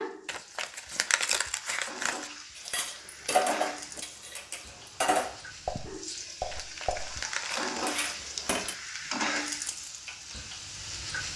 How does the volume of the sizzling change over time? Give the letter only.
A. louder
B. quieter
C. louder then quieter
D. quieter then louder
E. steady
A.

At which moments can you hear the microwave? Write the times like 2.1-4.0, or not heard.
not heard.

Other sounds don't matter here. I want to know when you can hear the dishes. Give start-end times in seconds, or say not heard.
2.5-8.8.